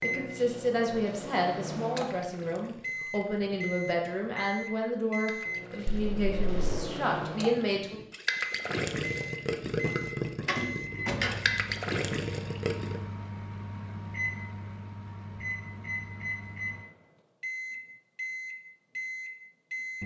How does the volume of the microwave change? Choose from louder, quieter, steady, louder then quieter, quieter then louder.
steady.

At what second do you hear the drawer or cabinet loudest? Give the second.
11 s.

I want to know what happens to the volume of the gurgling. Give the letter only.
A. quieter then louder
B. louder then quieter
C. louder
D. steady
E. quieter
C.